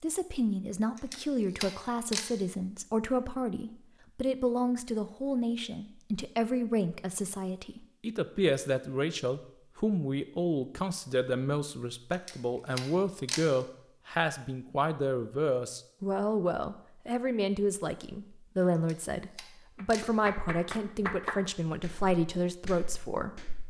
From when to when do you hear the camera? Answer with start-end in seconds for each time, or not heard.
0.9-2.2, 12.1-13.4, 18.8-20.1.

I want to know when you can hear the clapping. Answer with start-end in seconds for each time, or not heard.
19.8-23.6.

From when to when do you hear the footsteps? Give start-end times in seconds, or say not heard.
not heard.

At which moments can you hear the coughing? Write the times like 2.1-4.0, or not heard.
not heard.